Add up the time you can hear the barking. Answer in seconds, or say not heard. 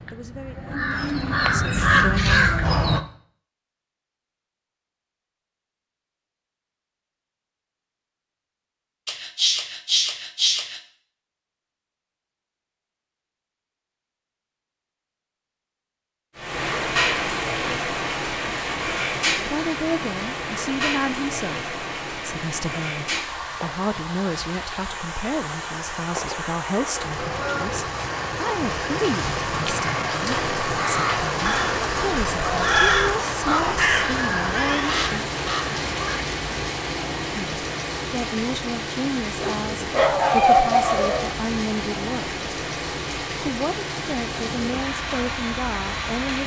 4 s.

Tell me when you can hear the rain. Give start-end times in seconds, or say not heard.
16.4-46.4.